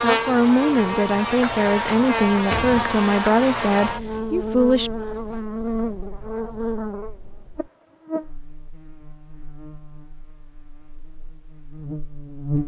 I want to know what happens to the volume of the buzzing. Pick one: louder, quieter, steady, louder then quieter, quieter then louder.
quieter.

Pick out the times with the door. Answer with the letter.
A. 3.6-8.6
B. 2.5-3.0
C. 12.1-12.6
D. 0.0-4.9
B.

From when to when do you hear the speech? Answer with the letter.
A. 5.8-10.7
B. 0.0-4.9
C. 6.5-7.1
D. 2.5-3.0
B.